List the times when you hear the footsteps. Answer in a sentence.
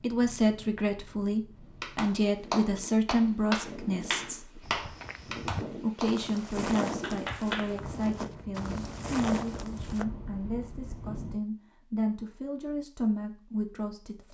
You can hear the footsteps from 4.6 to 10.1 s.